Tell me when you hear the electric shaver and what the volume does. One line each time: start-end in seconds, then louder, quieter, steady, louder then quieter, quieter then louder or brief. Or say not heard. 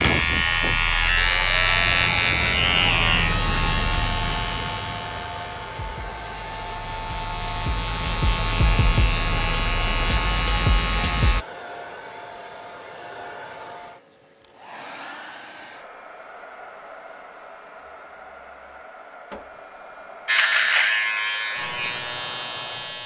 0.0-11.4 quieter then louder
20.2-23.0 brief.